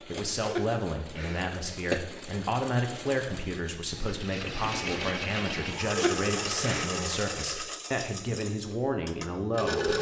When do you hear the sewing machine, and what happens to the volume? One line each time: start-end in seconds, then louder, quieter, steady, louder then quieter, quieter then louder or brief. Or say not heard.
0.0-9.9 louder then quieter.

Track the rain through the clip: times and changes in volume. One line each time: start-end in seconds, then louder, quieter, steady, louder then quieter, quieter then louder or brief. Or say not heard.
not heard.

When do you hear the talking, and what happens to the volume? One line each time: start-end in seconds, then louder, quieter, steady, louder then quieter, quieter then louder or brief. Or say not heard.
0.0-9.9 steady.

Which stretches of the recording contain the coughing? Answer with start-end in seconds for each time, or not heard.
0.5-2.0, 6.0-6.9.